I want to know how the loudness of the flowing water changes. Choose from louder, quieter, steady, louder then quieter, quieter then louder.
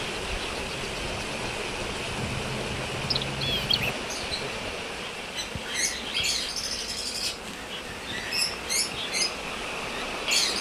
quieter then louder.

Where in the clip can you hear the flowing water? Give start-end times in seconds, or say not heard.
0.0-10.5.